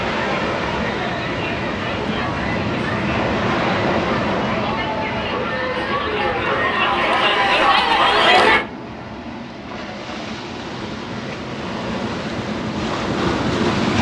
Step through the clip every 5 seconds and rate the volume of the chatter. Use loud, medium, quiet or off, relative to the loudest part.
medium, loud, off.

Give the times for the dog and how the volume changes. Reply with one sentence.
The dog can't be heard in this clip.